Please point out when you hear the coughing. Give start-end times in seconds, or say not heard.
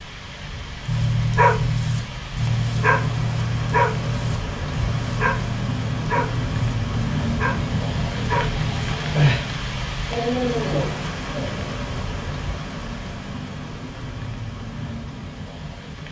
not heard.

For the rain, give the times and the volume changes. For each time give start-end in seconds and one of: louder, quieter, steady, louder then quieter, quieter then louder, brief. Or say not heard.
0.0-16.0 louder then quieter.